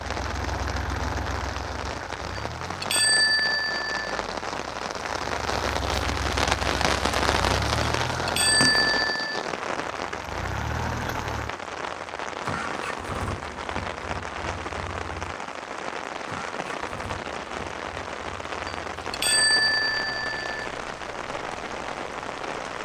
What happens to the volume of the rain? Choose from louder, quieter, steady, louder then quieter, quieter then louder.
louder then quieter.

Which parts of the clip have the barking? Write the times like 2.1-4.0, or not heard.
not heard.